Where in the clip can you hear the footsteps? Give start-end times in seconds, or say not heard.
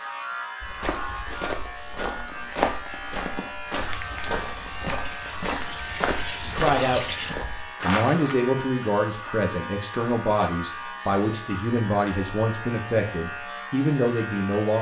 0.6-8.2.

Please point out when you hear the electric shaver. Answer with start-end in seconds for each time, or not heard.
0.0-14.7.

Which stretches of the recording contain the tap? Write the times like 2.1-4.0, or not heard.
3.8-7.3.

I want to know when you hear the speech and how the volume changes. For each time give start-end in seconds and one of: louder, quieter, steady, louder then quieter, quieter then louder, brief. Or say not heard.
6.4-14.7 steady.